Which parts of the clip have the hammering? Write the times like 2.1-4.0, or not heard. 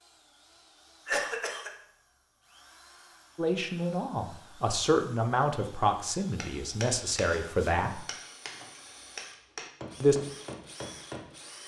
6.2-11.3.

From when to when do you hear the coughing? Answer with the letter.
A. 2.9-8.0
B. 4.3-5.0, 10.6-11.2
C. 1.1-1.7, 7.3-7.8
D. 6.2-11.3
C.